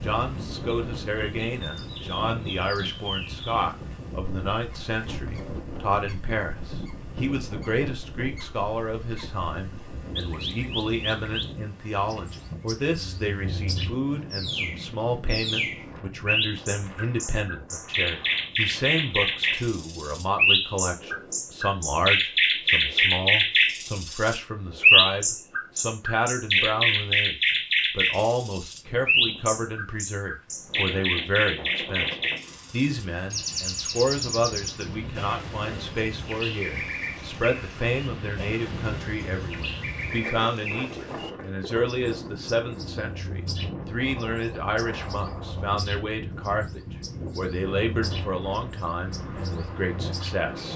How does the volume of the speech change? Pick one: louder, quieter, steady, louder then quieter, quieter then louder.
steady.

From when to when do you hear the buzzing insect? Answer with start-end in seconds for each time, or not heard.
not heard.